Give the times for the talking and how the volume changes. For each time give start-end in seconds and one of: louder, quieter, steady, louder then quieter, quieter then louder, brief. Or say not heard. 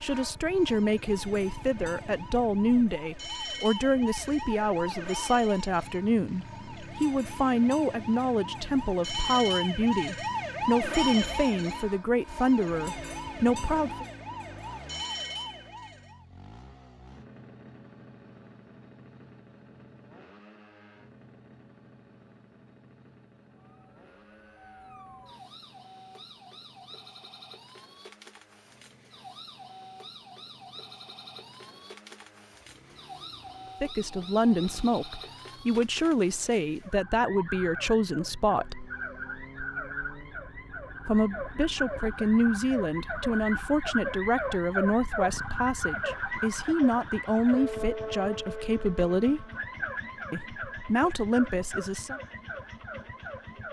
0.0-14.1 steady
33.8-38.9 steady
41.0-49.5 steady
50.3-52.2 brief.